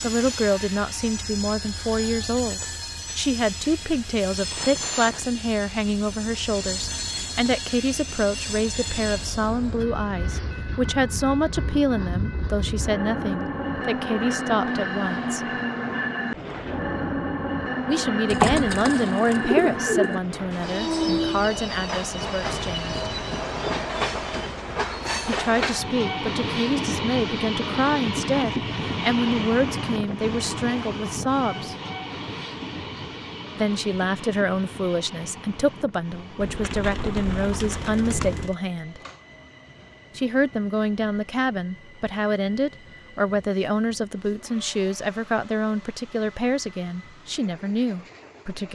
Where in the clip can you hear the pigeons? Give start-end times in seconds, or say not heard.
18.2-20.1, 36.4-38.5.